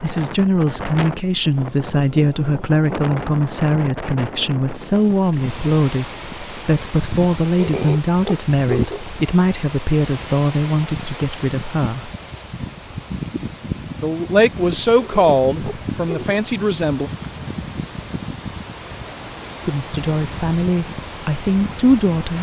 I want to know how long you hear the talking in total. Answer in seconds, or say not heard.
18 s.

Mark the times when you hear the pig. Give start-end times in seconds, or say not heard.
7.5-9.2, 14.9-16.4.